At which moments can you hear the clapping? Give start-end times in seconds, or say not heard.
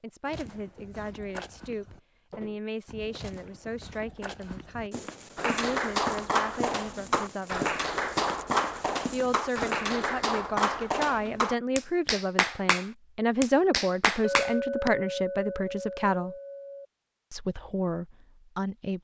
5.3-14.9.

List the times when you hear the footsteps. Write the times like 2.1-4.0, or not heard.
0.2-9.8.